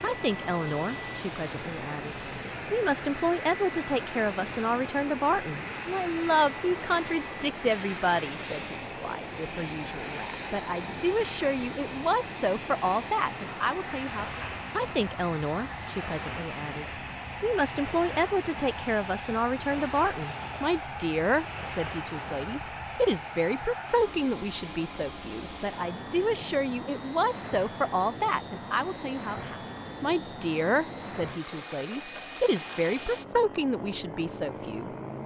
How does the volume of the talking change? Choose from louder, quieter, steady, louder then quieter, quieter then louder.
steady.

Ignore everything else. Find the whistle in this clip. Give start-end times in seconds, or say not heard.
not heard.